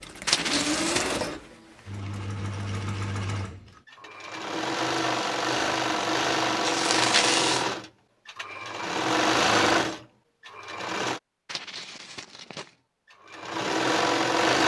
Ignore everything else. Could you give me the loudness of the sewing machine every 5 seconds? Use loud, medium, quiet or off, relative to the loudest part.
medium, loud, loud.